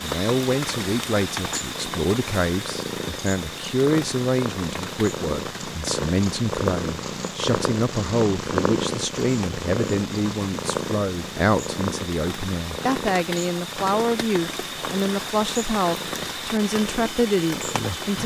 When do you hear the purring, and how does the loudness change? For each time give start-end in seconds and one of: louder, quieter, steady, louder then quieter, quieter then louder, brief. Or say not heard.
0.0-17.9 louder then quieter.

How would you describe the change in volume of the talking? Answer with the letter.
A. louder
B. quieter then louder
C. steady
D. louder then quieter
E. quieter
C.